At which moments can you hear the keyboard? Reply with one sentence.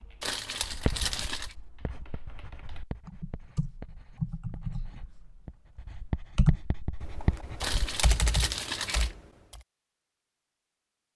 You can hear the keyboard from 0.0 to 9.6 s.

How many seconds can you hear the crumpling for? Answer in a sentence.
The crumpling can be heard for 3 seconds in total.